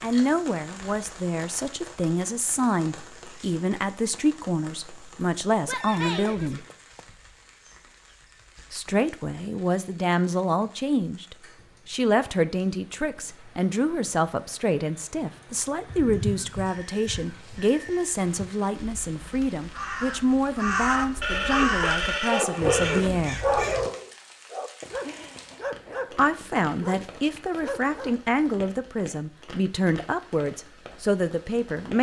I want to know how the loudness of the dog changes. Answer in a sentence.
The loudness of the dog goes down.